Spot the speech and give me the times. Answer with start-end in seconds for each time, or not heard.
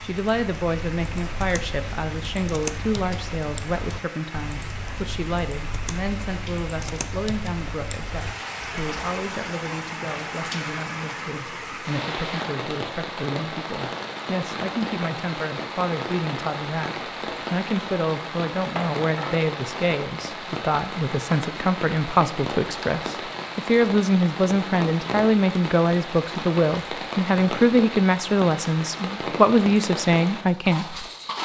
0.0-31.4.